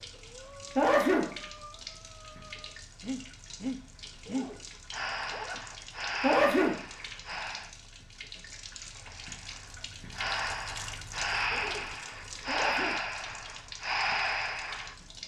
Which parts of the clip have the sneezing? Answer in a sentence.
The sneezing can be heard from 0.8 to 1.3 s, from 6.2 to 6.8 s and from 12.4 to 13.0 s.